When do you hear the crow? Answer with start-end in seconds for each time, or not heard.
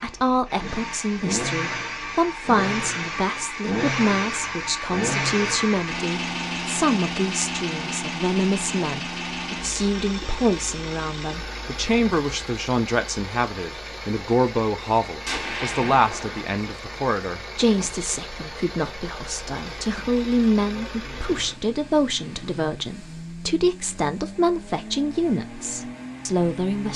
not heard.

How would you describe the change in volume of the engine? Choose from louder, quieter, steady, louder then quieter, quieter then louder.
quieter.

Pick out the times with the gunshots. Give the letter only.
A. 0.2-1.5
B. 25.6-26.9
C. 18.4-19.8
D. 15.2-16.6
D.